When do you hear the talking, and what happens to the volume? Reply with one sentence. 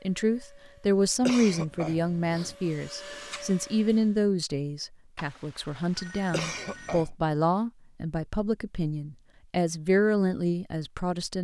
You can hear the talking from 0.1 to 11.3 s, getting quieter then louder.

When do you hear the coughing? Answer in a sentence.
You can hear the coughing from 1.2 to 2.5 s and from 6.3 to 7.1 s.